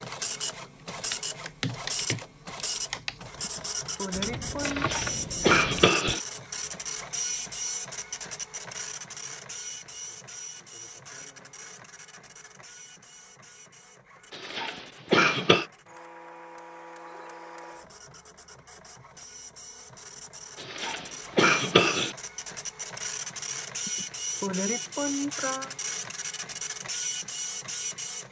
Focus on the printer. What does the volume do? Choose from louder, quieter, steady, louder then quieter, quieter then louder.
quieter then louder.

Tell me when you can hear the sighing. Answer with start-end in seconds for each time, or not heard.
3.4-4.8, 23.9-25.7.